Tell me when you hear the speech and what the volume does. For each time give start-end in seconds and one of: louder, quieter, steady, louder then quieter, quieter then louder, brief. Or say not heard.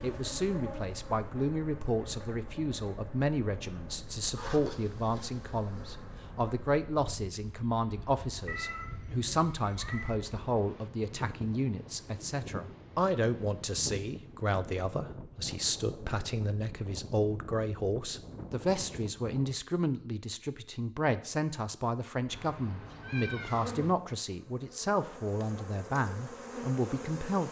0.0-27.4 steady.